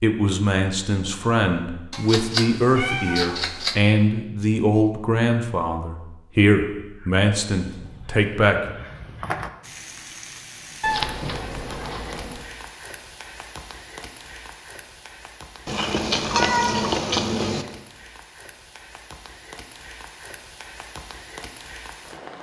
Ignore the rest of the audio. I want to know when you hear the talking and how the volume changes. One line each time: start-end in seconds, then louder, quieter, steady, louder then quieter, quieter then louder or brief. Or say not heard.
0.0-8.8 steady.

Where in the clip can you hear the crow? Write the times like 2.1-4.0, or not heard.
7.0-9.5.